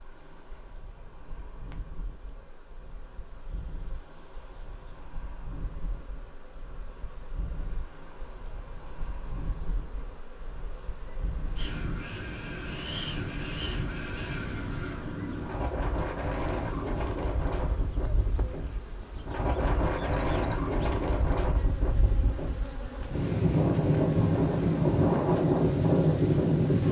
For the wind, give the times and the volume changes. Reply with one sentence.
The wind can be heard from 0.0 to 26.8 s, getting louder.